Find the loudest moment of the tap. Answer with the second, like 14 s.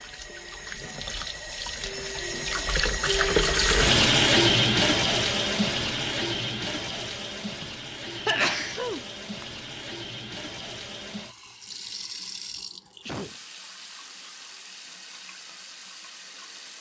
4 s.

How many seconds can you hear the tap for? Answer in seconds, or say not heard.
17 s.